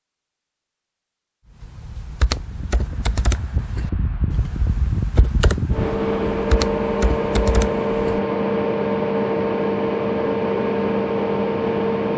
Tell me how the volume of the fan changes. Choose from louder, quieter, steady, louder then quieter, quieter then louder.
louder.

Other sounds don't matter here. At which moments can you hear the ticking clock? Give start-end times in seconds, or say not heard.
not heard.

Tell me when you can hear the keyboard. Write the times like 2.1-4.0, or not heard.
1.6-8.2.